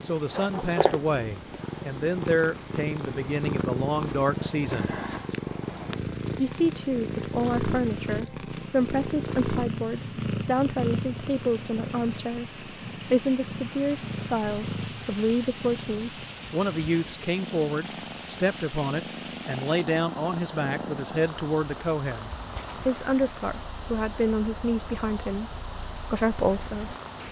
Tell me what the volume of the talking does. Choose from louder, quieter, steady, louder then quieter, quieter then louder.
steady.